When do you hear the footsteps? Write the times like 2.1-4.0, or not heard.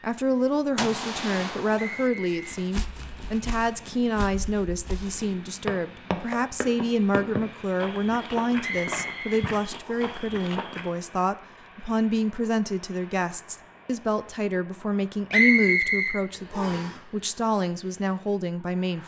2.3-10.9.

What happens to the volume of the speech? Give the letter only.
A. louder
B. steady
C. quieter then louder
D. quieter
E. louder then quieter
B.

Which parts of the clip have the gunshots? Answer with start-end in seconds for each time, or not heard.
0.8-2.1.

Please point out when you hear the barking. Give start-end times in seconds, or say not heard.
not heard.